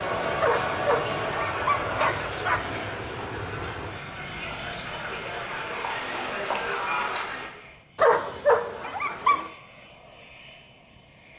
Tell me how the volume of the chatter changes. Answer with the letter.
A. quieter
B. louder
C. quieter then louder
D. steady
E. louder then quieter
C.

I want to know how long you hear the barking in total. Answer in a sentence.
You can hear the barking for 4 seconds altogether.